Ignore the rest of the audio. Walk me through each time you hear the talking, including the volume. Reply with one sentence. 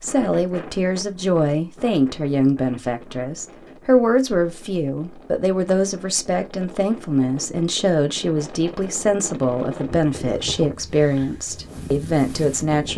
You can hear the talking from 0.0 to 12.9 s, at a steady volume.